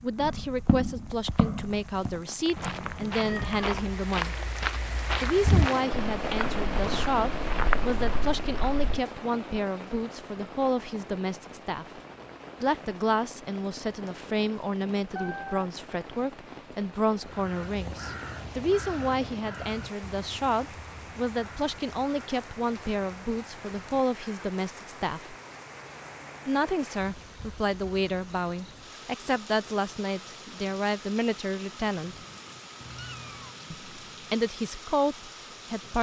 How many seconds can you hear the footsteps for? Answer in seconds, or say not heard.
9 s.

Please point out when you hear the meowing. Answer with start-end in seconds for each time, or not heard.
2.5-3.9, 15.2-15.6, 32.8-33.5.